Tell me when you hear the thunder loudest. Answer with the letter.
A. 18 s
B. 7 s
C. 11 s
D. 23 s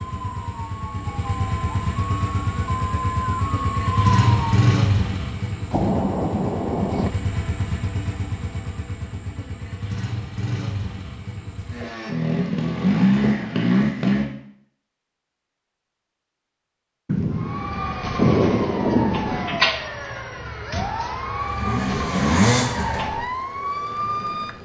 A.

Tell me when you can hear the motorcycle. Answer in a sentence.
You can hear the motorcycle from 0.0 to 14.2 s and from 21.4 to 23.1 s.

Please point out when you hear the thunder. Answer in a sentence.
The thunder can be heard from 5.7 to 7.1 s and from 17.1 to 19.7 s.